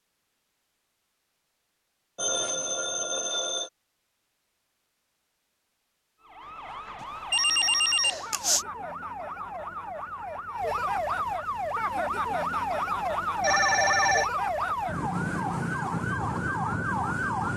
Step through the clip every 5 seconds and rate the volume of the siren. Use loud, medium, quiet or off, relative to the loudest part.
off, medium, loud, loud.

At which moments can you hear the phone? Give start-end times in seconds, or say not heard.
2.1-3.7, 7.3-8.7, 13.4-14.3.